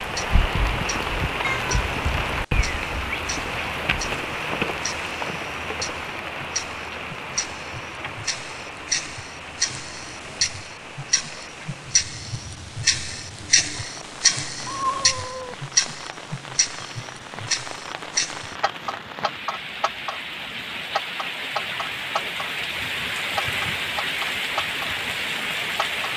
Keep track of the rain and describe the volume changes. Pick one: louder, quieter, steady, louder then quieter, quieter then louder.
quieter then louder.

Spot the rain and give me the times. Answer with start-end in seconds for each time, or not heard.
0.0-26.1.